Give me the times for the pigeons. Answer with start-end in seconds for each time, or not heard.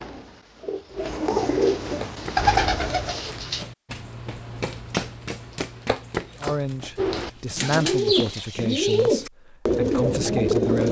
0.0-3.6, 7.0-10.8.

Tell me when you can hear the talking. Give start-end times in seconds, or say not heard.
6.3-10.8.